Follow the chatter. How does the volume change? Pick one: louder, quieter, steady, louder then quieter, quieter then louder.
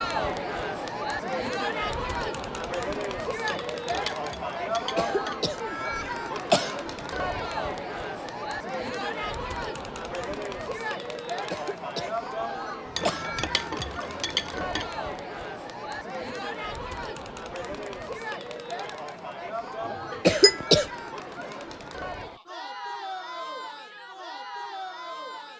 quieter.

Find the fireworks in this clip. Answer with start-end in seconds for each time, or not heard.
not heard.